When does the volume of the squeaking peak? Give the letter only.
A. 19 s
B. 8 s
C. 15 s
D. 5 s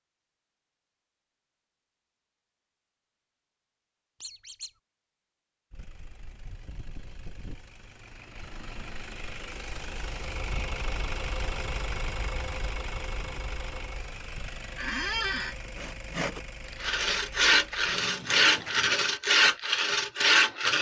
C.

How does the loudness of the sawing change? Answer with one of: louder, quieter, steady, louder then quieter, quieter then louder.
louder.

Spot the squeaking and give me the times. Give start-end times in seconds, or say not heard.
4.2-4.7, 14.8-15.6.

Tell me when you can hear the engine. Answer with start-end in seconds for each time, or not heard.
5.7-19.1.